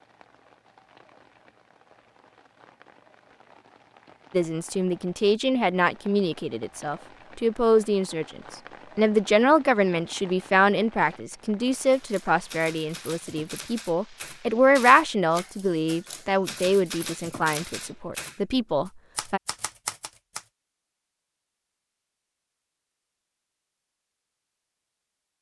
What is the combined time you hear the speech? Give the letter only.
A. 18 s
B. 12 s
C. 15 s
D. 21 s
C.